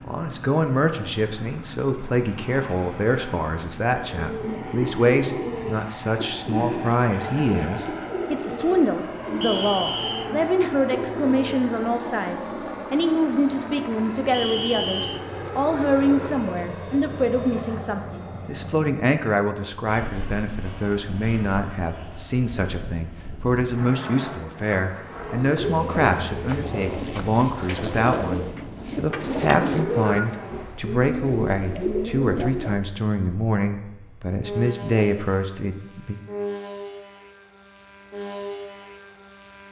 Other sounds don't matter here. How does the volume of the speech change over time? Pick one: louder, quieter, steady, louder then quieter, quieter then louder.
steady.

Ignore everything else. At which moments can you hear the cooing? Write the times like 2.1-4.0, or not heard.
4.0-11.3, 25.1-32.8.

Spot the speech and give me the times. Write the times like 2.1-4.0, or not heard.
0.0-36.1.